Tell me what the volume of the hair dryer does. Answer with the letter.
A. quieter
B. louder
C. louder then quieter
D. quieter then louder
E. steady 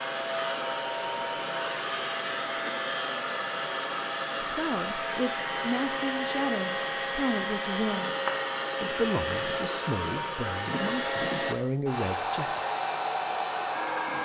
E.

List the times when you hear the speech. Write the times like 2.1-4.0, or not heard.
4.4-8.1, 8.8-12.6.